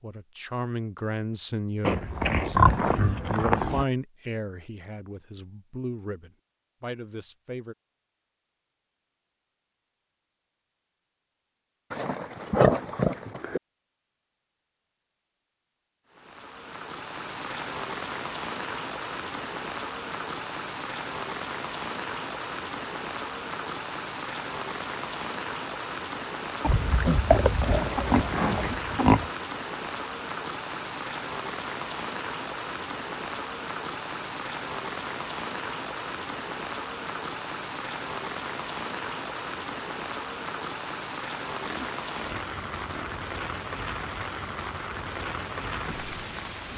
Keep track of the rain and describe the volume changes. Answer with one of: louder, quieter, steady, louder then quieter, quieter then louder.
steady.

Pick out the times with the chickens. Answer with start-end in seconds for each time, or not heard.
not heard.